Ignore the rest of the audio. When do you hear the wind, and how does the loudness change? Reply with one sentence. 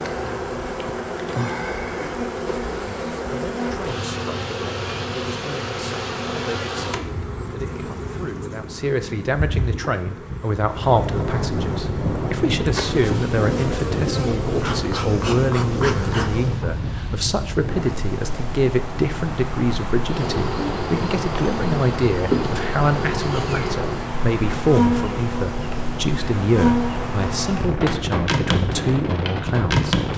You can hear the wind from 10.8 to 30.1 s, at a steady volume.